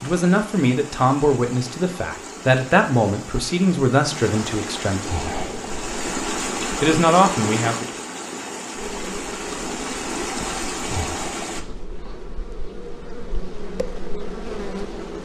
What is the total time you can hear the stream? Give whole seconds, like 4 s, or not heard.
12 s.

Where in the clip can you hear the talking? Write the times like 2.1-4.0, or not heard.
0.0-5.2, 6.8-7.8.